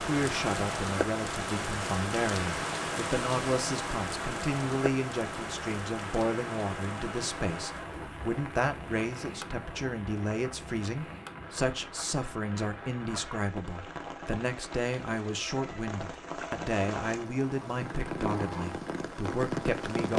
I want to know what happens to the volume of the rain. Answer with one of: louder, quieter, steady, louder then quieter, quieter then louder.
quieter then louder.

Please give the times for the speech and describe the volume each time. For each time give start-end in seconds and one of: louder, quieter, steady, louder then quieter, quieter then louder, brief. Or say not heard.
0.0-20.1 steady.